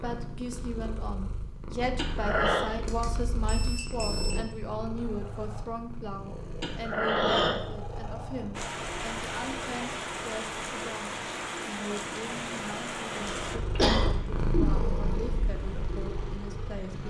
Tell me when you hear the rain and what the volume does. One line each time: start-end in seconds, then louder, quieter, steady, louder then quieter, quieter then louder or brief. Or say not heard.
8.5-17.0 quieter.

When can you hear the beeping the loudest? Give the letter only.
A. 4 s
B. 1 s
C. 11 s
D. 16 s
A.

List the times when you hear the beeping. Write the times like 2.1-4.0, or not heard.
2.9-4.5.